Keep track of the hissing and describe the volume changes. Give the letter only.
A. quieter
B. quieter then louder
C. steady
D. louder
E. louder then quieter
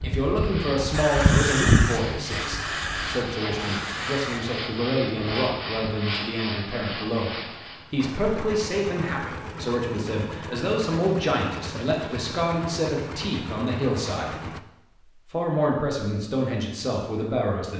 A.